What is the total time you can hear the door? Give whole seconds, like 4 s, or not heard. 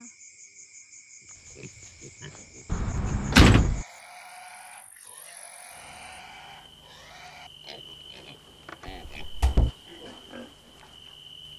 2 s.